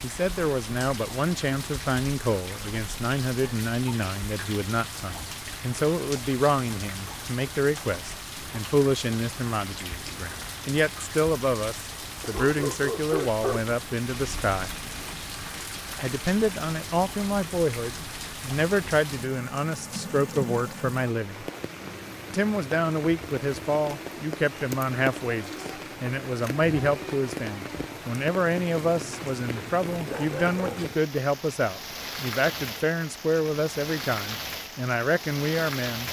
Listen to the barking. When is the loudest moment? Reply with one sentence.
The loudest moment of the barking is at 13 seconds.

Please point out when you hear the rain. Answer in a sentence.
You can hear the rain from 0.0 to 36.0 s.